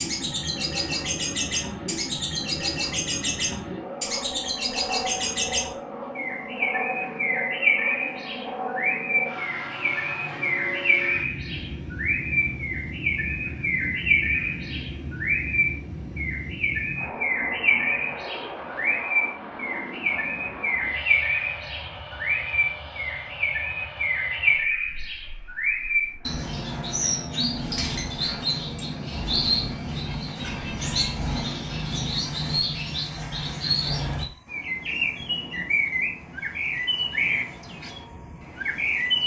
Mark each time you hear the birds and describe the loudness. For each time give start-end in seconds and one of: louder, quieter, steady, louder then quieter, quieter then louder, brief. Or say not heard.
0.0-39.2 steady.